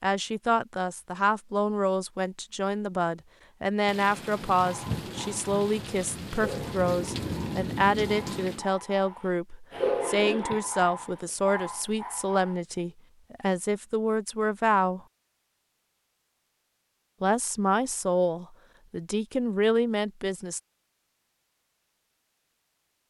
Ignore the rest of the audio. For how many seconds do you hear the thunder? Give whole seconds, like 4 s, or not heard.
5 s.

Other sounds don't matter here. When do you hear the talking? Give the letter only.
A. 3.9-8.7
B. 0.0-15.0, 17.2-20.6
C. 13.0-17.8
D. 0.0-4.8
B.